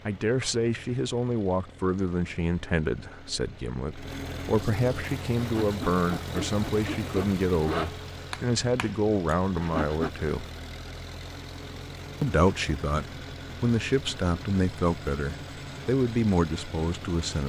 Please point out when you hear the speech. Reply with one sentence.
You can hear the speech from 0.1 to 10.4 s and from 12.2 to 17.4 s.